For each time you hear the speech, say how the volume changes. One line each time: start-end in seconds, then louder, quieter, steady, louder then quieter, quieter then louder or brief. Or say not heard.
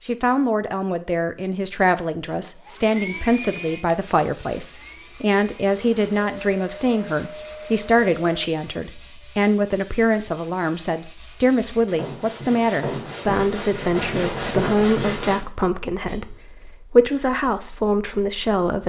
0.1-18.8 steady.